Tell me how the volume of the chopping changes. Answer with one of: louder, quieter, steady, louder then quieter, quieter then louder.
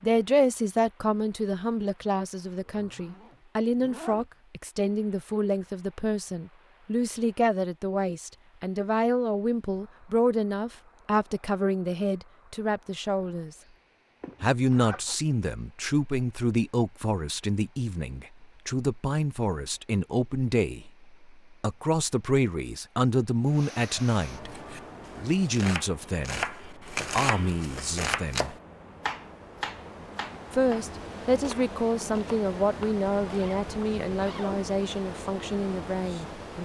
louder then quieter.